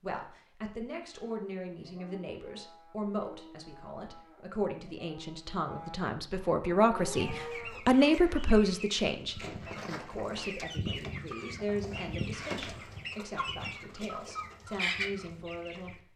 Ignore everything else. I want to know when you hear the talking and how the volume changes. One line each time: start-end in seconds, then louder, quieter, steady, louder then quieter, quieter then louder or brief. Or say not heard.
0.0-16.1 louder then quieter.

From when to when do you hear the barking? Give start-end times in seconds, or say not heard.
not heard.